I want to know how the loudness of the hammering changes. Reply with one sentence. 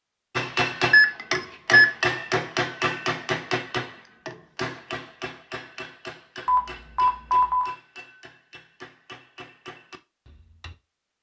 The loudness of the hammering goes down.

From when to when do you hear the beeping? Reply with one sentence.
The beeping can be heard from 0.9 to 1.9 s and from 6.5 to 7.8 s.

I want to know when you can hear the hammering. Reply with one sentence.
You can hear the hammering from 0.3 to 10.8 s.